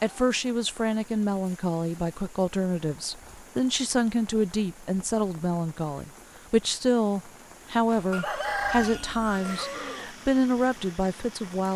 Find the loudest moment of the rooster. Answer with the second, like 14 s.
9 s.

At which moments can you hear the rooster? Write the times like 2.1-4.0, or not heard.
8.1-10.2.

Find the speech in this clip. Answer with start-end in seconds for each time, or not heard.
0.0-11.7.